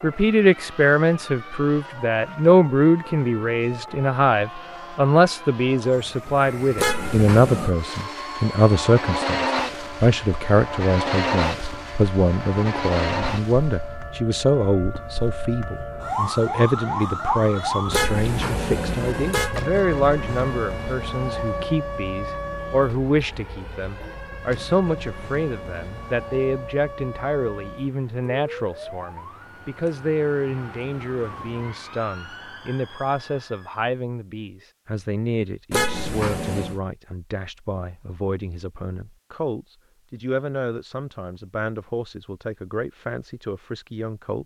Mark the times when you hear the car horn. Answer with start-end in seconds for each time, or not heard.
6.8-7.8, 17.9-19.6, 35.7-36.8.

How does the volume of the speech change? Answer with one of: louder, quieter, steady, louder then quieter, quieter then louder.
quieter.